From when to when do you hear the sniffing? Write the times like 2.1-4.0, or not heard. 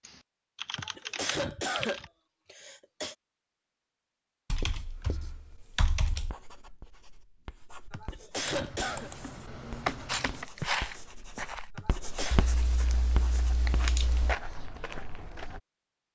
0.8-3.1, 7.9-9.1, 11.8-12.4.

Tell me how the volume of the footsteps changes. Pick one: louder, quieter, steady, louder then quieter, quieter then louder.
quieter then louder.